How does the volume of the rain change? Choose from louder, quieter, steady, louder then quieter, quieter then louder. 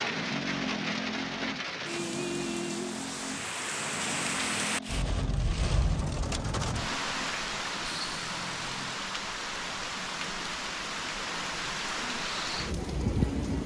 steady.